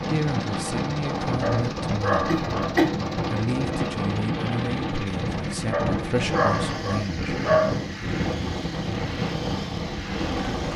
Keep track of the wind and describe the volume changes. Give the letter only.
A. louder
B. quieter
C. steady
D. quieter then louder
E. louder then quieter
C.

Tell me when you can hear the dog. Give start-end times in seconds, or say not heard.
1.4-2.8, 5.7-7.8.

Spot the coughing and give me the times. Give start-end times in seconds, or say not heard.
2.2-2.9.